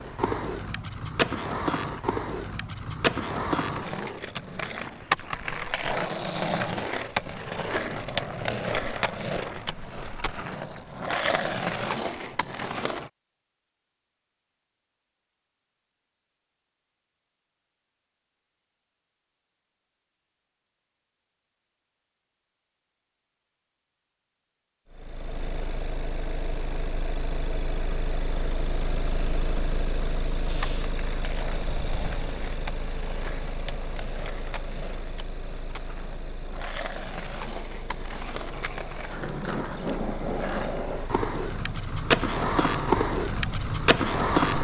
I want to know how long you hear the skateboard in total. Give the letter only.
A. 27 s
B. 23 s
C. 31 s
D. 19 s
A.